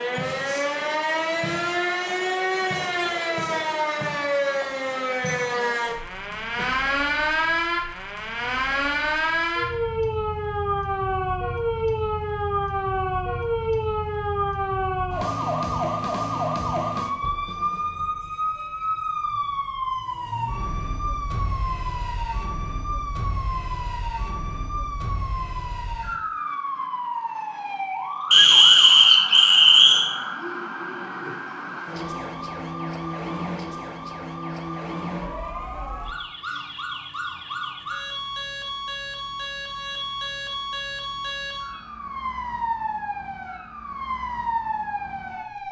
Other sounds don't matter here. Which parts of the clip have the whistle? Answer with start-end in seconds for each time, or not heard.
28.3-30.1.